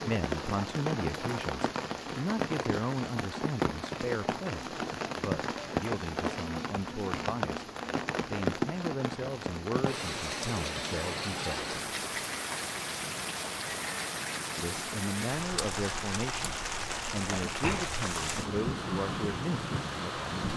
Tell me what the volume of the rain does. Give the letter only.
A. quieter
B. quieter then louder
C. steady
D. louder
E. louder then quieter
C.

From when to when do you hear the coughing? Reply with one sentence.
The coughing can be heard from 17.2 to 18.0 s.